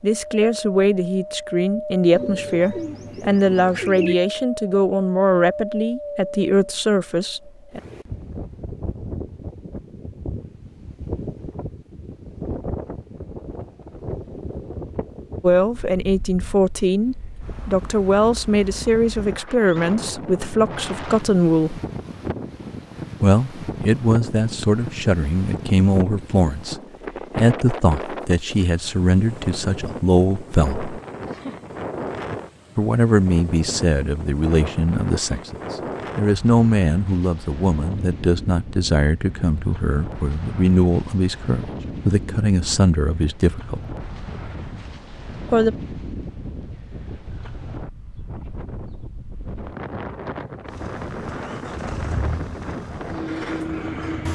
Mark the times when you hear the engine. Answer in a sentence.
You can hear the engine from 50.6 to 54.3 s.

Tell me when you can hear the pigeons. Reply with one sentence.
The pigeons can be heard from 2.1 to 4.2 s.